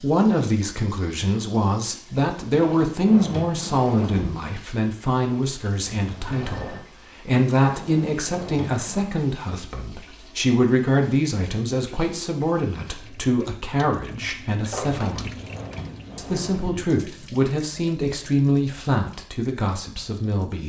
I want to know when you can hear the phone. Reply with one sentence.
You can hear the phone from 5.8 to 6.8 s and from 14.7 to 15.2 s.